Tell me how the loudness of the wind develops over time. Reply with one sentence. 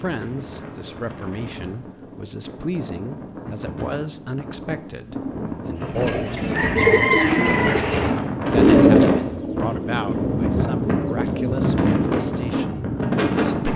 The loudness of the wind goes up.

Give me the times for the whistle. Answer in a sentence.
The whistle can't be heard in this clip.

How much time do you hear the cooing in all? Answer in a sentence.
You can hear the cooing for 7 seconds altogether.